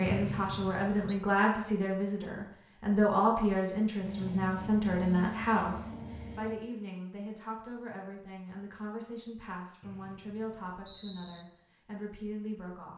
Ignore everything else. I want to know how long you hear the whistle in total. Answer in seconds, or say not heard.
3 s.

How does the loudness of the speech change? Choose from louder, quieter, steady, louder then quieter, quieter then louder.
quieter.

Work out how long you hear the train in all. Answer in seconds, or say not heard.
3 s.